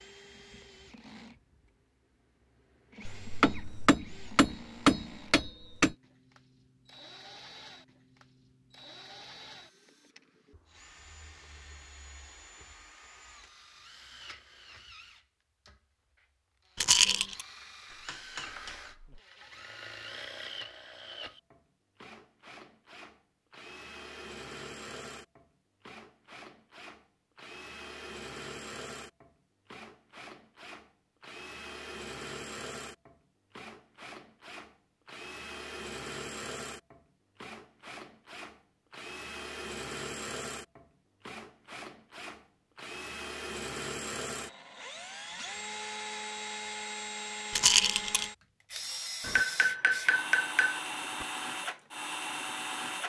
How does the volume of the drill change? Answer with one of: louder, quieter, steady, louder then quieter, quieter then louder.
louder.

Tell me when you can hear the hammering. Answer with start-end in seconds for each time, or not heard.
3.0-6.0, 17.9-19.2, 49.2-51.2.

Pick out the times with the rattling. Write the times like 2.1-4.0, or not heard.
16.8-17.4, 47.5-48.3.